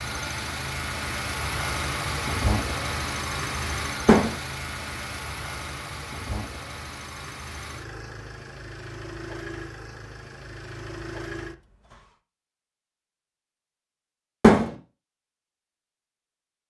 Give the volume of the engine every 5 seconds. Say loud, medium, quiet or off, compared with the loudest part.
loud, medium, medium, off.